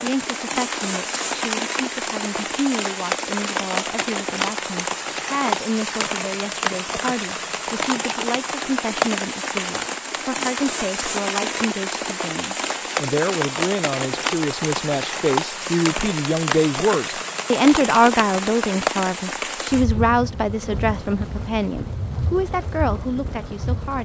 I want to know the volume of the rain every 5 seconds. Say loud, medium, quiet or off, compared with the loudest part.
loud, loud, loud, loud, medium.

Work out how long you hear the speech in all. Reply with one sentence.
You can hear the speech for 24 seconds altogether.